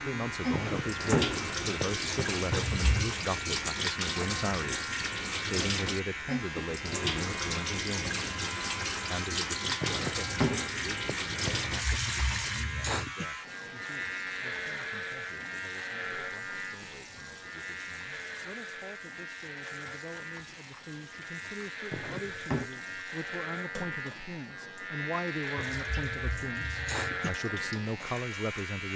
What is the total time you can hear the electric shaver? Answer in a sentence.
The electric shaver can be heard for 29 seconds in total.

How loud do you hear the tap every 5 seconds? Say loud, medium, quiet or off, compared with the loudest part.
loud, loud, loud, quiet, quiet, quiet.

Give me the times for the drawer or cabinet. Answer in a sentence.
The drawer or cabinet can be heard from 0.5 to 2.0 s, from 9.8 to 11.6 s and from 21.9 to 22.7 s.